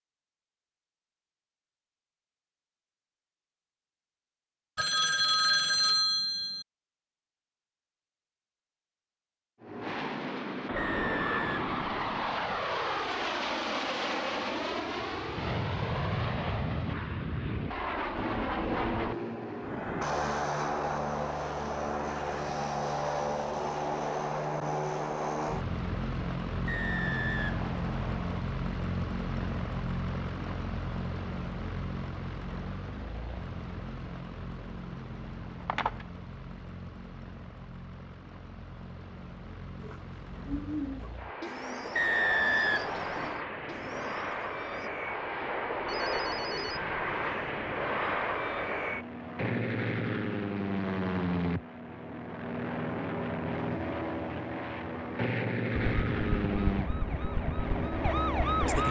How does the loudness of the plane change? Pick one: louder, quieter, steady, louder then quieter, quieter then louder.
quieter then louder.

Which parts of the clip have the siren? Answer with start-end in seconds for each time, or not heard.
56.0-58.8.